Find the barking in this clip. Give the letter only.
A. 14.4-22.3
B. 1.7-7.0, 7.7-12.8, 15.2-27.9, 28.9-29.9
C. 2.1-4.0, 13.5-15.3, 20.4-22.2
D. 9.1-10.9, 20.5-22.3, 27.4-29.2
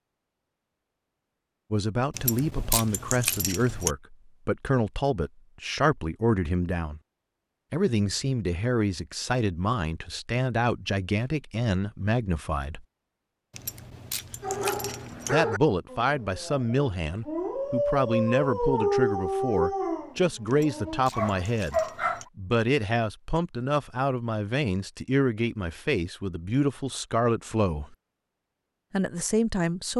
A.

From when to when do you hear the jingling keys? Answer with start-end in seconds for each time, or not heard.
2.1-4.0, 13.5-15.3, 20.4-22.2.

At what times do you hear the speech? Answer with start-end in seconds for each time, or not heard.
1.7-7.0, 7.7-12.8, 15.2-27.9, 28.9-29.9.